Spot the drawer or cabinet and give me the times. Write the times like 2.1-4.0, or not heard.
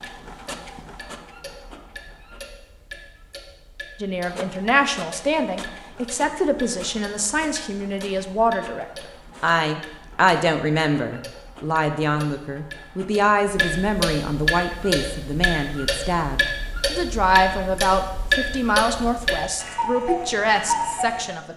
not heard.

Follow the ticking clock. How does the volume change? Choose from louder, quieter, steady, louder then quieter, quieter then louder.
louder.